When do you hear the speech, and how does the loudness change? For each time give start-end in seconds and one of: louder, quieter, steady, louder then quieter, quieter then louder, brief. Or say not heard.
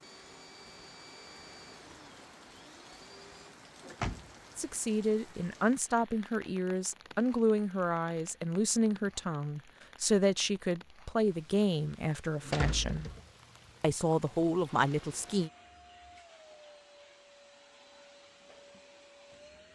4.5-13.1 steady
13.8-15.5 brief.